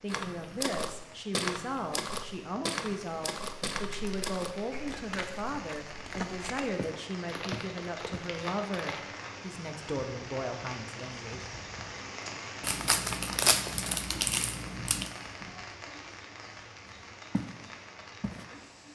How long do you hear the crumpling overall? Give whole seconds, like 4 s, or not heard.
5 s.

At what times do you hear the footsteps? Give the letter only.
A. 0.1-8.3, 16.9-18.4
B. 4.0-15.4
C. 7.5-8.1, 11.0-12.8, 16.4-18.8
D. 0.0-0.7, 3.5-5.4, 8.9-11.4
A.